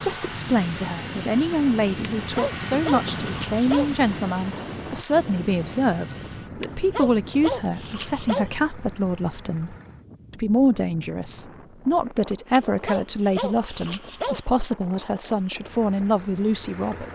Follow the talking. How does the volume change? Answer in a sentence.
The volume of the talking stays about the same.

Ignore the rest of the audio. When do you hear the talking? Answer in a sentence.
The talking can be heard from 0.0 to 17.1 s.